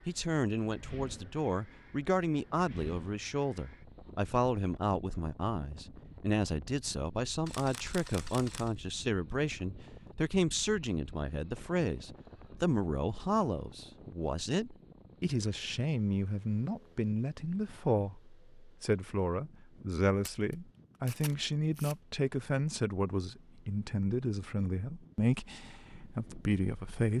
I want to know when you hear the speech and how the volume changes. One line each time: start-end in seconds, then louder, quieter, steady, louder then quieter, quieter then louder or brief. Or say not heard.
0.1-27.1 steady.